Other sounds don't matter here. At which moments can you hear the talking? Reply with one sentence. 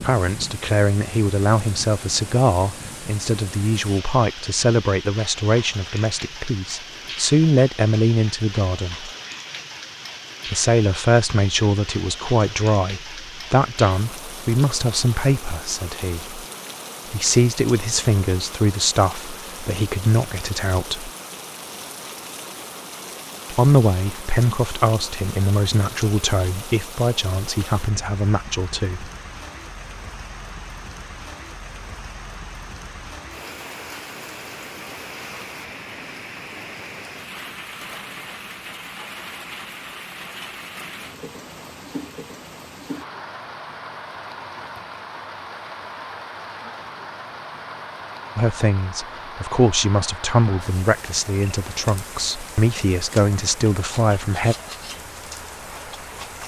The talking can be heard from 0.0 to 9.1 s, from 10.4 to 16.4 s, from 17.1 to 21.1 s, from 23.5 to 29.1 s and from 48.4 to 54.5 s.